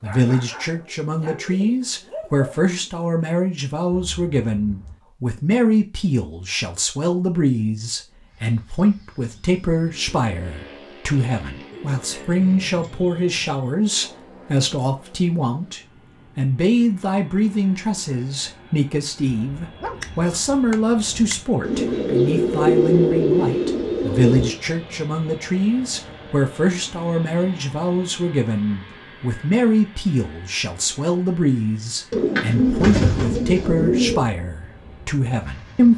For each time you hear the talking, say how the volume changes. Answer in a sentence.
You can hear the talking from 0.0 to 35.9 s, at a steady volume.